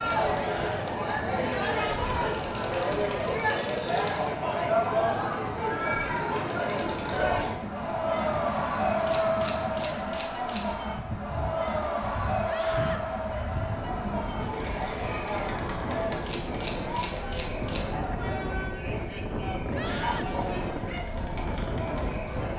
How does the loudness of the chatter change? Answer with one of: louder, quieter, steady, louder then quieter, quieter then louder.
quieter.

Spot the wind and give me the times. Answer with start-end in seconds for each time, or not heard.
0.0-22.5.